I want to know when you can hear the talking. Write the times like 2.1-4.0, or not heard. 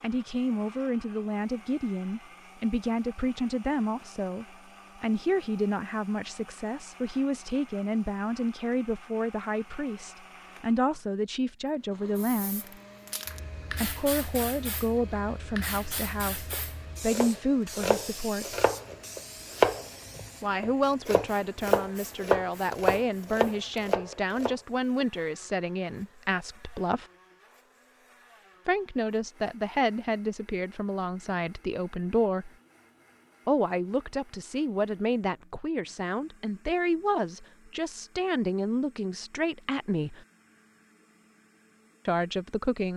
0.0-12.8, 13.7-18.6, 20.4-27.1, 28.6-32.5, 33.5-40.2, 42.0-42.9.